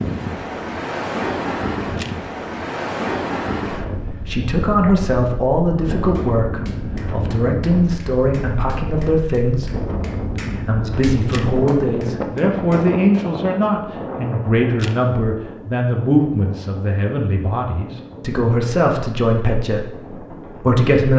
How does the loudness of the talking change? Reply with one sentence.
The volume of the talking stays about the same.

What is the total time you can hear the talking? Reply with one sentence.
The talking can be heard for 17 seconds in total.